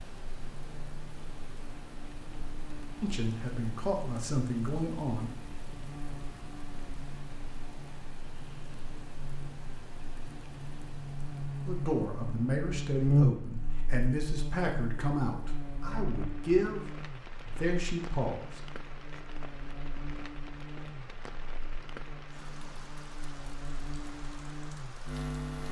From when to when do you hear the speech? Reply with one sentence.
The speech can be heard from 3.0 to 5.3 s and from 11.7 to 18.6 s.